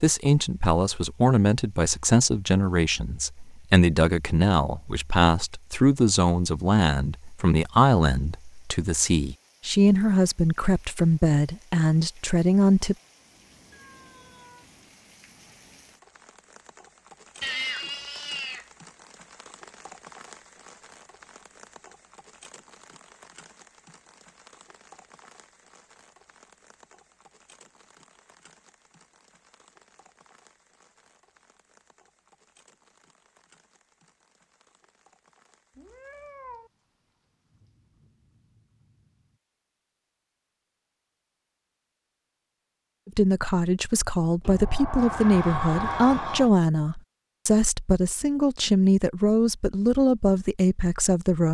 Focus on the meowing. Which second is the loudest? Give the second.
18 s.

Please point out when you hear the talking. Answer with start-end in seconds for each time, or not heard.
0.0-12.9, 43.0-51.4.